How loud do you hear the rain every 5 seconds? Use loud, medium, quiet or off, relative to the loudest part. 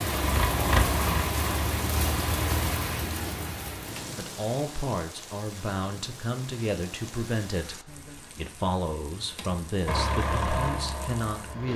loud, quiet, quiet.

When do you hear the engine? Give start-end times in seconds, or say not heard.
0.0-3.0, 9.8-11.7.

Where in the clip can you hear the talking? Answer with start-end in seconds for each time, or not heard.
4.2-11.7.